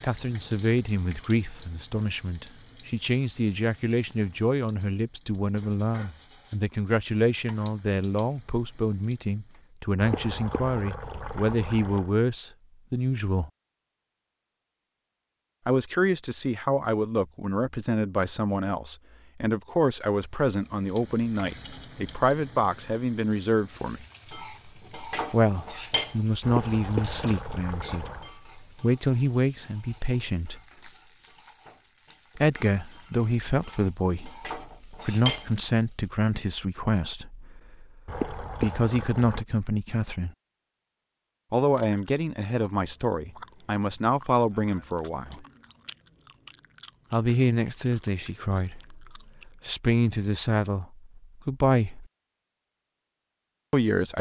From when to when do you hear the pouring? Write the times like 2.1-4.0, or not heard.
10.0-12.1, 26.4-28.3, 38.0-39.5.